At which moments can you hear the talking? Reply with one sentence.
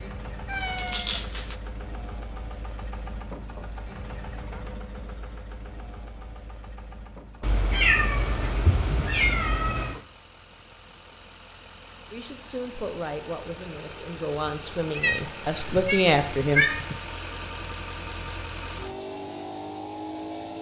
You can hear the talking from 12.1 to 16.6 s.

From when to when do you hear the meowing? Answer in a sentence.
The meowing can be heard from 0.5 to 1.6 s, from 7.4 to 10.0 s and from 14.9 to 16.9 s.